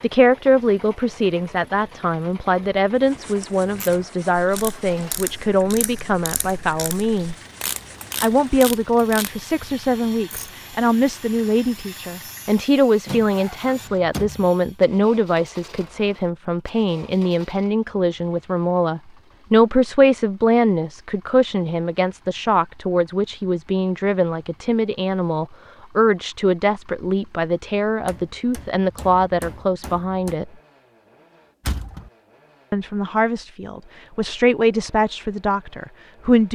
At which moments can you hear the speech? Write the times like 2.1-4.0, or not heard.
0.0-7.3, 8.2-30.5, 32.7-36.5.